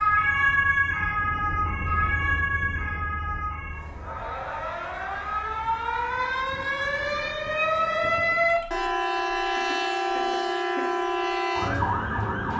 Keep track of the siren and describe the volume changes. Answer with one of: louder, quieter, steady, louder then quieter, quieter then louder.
quieter then louder.